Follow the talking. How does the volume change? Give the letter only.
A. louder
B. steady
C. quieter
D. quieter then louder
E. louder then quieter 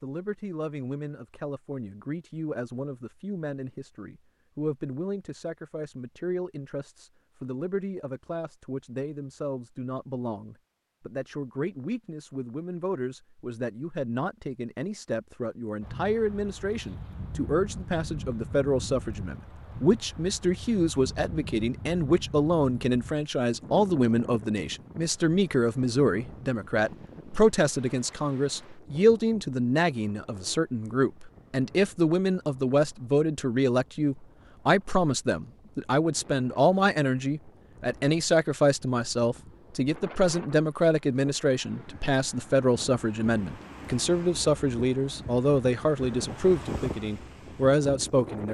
A.